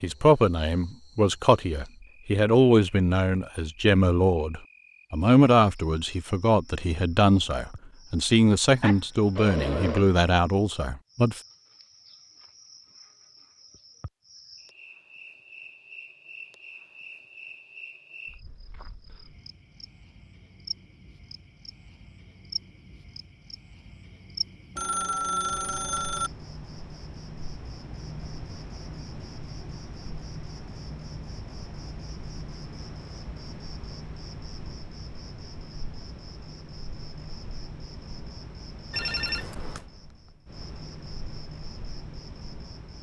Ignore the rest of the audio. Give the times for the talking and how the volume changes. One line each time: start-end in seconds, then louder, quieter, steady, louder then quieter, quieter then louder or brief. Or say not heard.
0.0-11.4 steady.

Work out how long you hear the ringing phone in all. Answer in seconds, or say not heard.
4 s.